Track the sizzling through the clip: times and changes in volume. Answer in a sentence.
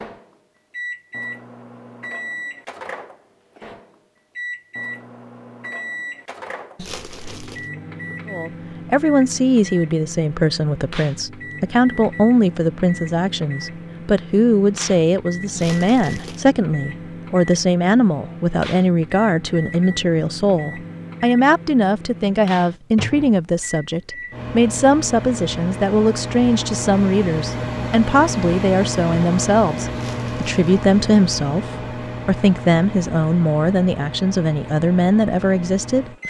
You can't hear the sizzling here.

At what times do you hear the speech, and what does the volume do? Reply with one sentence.
You can hear the speech from 8.3 to 36.2 s, at a steady volume.